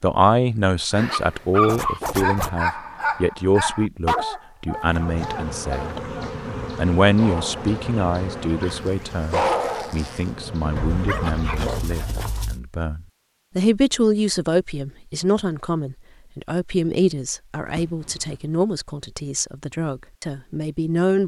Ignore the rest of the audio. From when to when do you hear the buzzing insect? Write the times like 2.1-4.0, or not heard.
4.7-11.4.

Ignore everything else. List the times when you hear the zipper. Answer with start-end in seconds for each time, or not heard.
1.6-2.6, 8.7-10.3, 17.6-18.6.